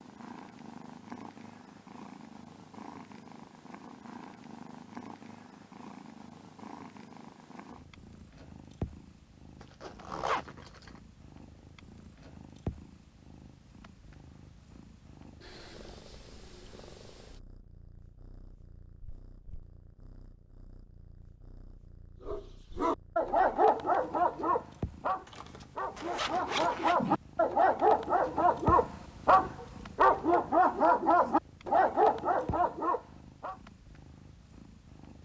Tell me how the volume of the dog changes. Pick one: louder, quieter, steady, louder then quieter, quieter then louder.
quieter then louder.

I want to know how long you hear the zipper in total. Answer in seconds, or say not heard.
3 s.